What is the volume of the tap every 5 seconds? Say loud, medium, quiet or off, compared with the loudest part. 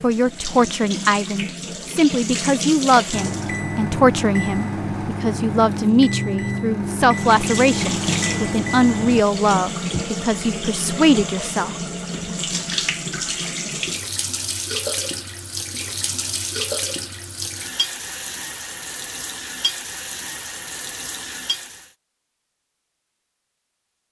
loud, loud, loud, loud, medium.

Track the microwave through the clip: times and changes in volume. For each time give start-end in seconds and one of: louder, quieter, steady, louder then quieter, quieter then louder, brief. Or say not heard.
3.1-9.2 steady.